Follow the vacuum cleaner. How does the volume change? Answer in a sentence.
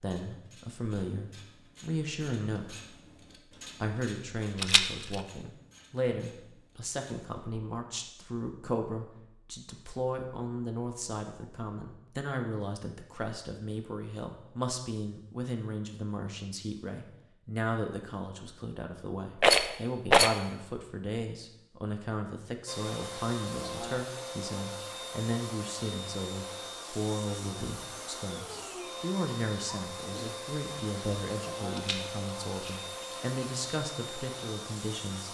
The loudness of the vacuum cleaner stays about the same.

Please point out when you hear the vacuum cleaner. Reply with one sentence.
You can hear the vacuum cleaner from 22.6 to 35.2 s.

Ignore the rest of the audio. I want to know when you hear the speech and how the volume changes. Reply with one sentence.
The speech can be heard briefly from 0.0 to 3.0 s; and from 3.8 to 35.2 s, at a steady volume.